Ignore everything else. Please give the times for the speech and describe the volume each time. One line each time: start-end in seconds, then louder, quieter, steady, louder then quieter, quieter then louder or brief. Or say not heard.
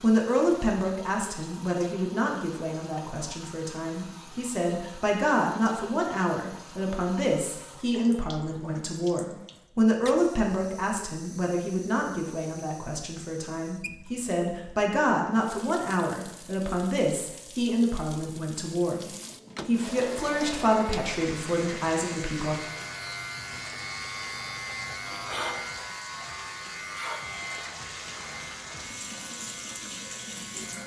0.0-22.6 steady.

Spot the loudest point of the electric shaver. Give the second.
25 s.